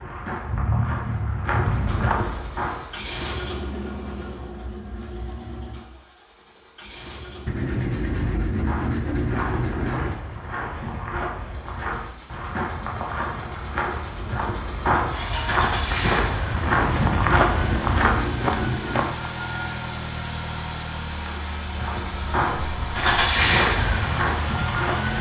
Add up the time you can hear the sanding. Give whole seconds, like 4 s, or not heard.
5 s.